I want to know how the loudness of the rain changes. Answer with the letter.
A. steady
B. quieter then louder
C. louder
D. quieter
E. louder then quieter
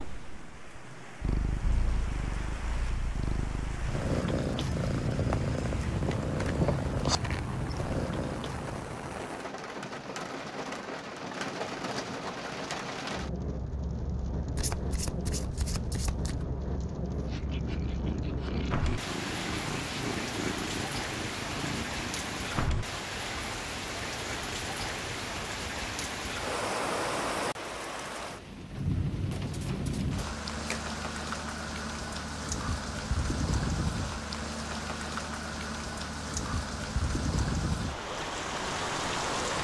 C.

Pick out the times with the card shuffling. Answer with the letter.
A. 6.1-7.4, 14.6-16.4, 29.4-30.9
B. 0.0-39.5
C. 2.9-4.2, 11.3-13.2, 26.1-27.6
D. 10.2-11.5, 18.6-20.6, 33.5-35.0
A.